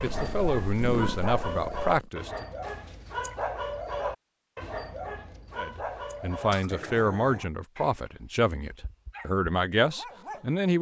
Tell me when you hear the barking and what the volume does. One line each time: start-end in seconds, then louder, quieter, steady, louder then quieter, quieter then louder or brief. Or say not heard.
0.0-10.7 quieter.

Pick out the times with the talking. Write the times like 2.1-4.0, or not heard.
0.0-2.5, 5.5-10.7.